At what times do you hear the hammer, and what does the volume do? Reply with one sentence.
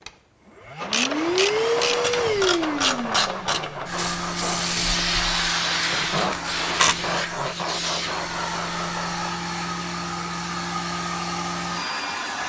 You can't hear the hammer here.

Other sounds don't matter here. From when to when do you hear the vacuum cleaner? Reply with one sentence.
The vacuum cleaner can be heard from 0.1 to 12.4 s.